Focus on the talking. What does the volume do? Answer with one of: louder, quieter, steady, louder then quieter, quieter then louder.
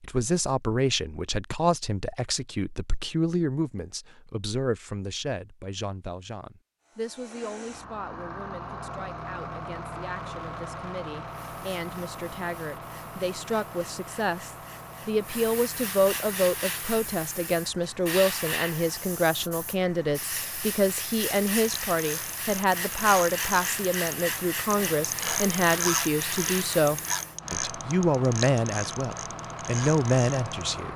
quieter then louder.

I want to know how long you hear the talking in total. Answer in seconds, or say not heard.
31 s.